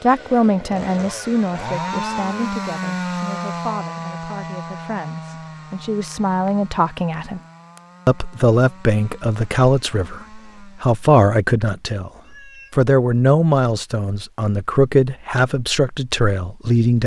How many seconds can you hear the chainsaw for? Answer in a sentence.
The chainsaw can be heard for 11 seconds in total.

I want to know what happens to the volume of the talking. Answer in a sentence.
The loudness of the talking goes down, then up.